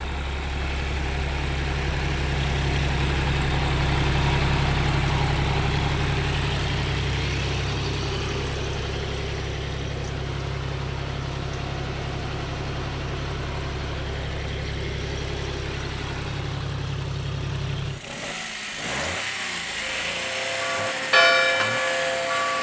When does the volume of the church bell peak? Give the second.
21 s.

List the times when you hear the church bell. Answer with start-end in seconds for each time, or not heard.
19.8-22.5.